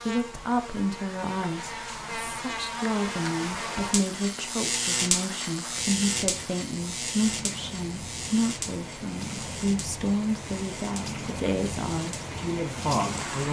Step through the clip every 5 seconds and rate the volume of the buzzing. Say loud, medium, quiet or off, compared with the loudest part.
loud, loud, medium.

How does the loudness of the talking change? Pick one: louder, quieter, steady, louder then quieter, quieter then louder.
steady.